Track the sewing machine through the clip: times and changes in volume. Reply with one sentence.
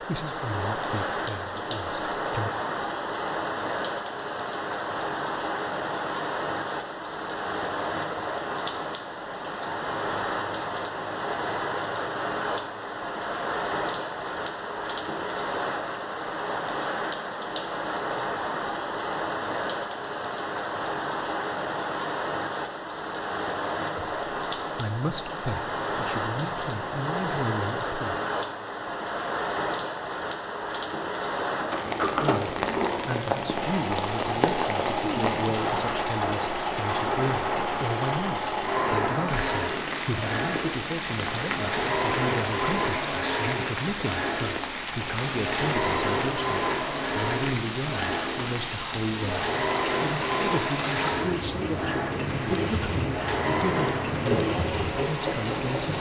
You can hear the sewing machine from 33.5 to 55.9 s, at a steady volume.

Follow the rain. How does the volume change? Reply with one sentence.
The loudness of the rain stays about the same.